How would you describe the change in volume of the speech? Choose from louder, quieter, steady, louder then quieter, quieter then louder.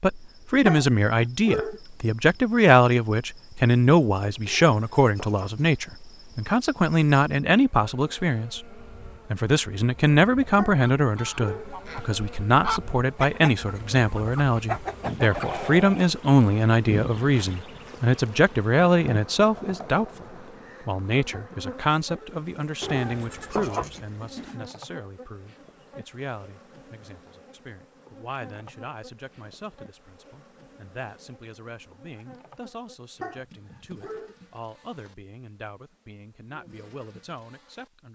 quieter.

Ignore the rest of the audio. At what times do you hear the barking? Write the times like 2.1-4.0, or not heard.
0.7-1.8, 10.6-11.7, 21.3-22.4, 33.2-34.4.